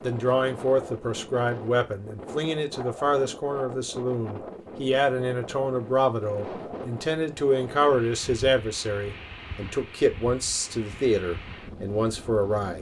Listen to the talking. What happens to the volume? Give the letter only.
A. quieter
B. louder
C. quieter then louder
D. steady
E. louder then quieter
D.